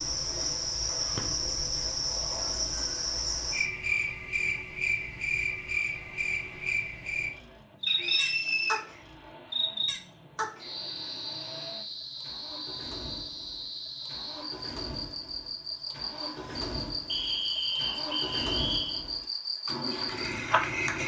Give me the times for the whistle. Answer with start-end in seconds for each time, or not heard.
7.8-8.8, 17.1-19.1.